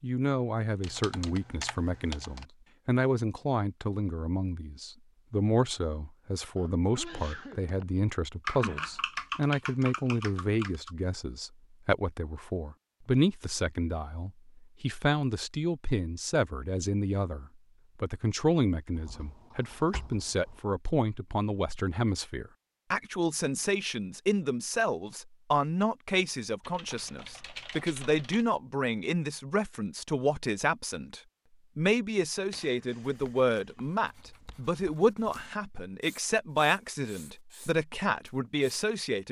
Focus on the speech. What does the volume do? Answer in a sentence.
The volume of the speech stays about the same.